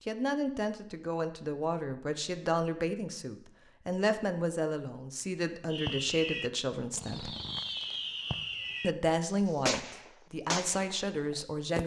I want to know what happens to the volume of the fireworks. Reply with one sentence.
The volume of the fireworks stays about the same.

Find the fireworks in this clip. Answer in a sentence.
You can hear the fireworks from 5.7 to 11.8 s.